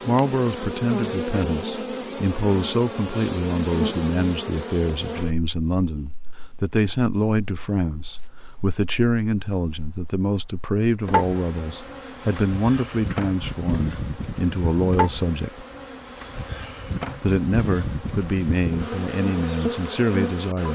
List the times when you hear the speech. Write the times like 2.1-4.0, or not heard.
0.1-15.7, 17.2-20.7.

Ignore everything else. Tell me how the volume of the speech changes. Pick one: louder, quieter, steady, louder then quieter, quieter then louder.
steady.